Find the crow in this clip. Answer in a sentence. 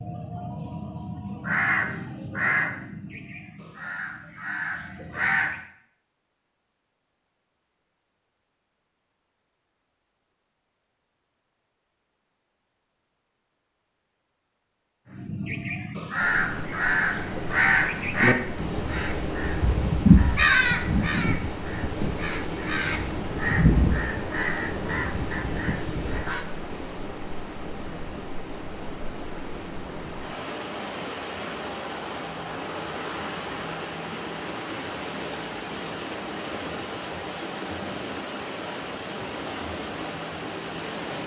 You can hear the crow from 0.0 to 5.6 s and from 15.1 to 26.4 s.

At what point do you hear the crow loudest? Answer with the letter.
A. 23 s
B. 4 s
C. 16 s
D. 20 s
D.